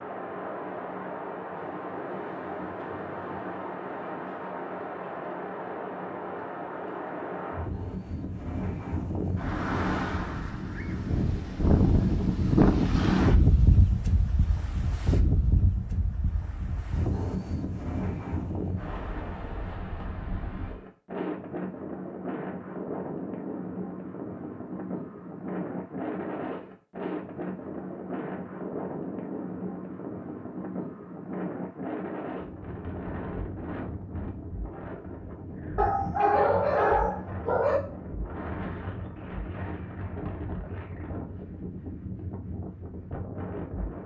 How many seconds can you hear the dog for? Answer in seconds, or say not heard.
2 s.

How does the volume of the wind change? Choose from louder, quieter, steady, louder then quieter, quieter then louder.
louder then quieter.